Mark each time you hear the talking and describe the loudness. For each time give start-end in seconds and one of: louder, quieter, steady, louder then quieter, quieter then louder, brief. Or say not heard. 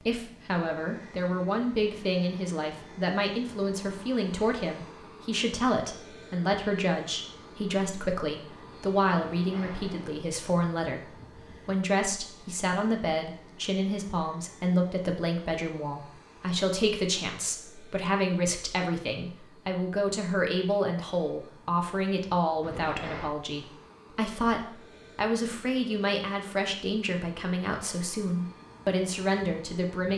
0.0-30.1 steady.